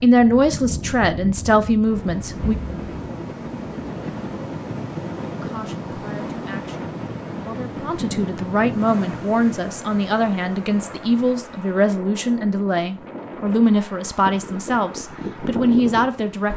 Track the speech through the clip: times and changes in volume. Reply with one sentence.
You can hear the speech briefly from 0.0 to 2.5 s; and from 5.3 to 16.5 s, getting louder.